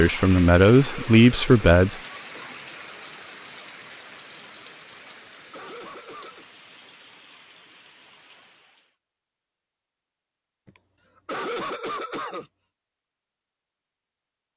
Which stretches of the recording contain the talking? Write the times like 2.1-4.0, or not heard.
0.0-1.9.